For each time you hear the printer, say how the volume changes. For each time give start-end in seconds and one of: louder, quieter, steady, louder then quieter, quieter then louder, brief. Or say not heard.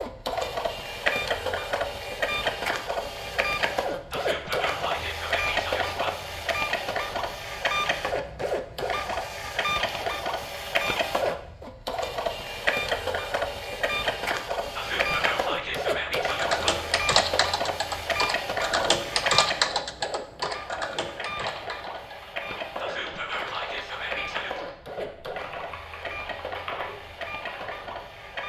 0.0-28.4 quieter.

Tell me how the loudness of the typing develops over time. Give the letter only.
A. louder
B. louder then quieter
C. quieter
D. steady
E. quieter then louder
C.